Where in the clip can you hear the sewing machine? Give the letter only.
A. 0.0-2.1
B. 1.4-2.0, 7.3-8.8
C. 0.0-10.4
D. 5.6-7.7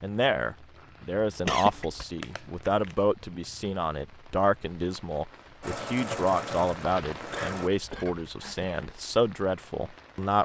D.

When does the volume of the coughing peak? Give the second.
2 s.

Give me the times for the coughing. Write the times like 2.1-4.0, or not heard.
1.4-2.0, 7.3-8.8.